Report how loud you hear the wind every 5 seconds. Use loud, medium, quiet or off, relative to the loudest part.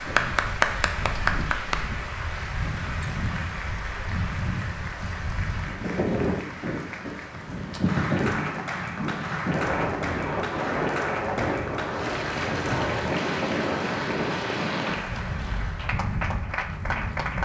medium, loud, loud, medium.